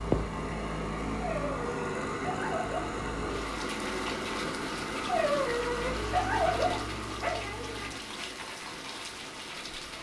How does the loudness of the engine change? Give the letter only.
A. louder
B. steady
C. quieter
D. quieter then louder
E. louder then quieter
C.